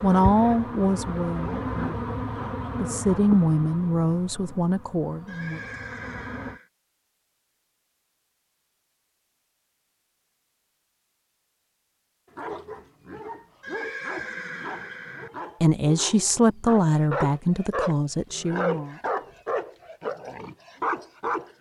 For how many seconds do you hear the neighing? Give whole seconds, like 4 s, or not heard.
3 s.